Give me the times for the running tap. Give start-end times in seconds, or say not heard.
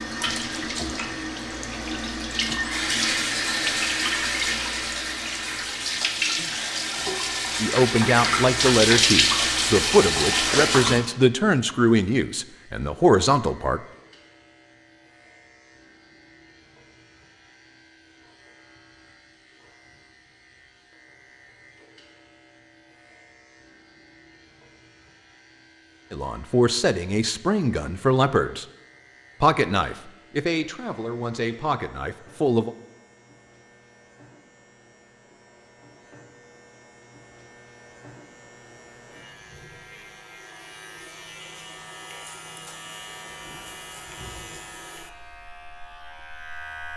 0.0-11.2.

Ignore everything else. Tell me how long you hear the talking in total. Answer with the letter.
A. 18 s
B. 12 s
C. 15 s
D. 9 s
B.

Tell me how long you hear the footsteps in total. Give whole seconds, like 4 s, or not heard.
not heard.